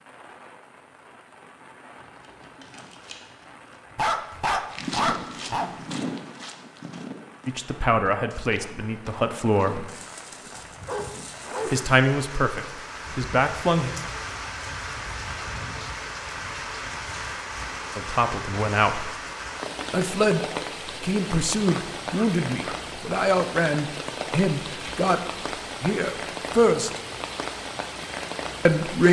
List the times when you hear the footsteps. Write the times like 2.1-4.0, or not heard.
4.7-10.1.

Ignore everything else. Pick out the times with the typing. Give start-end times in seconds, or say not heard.
not heard.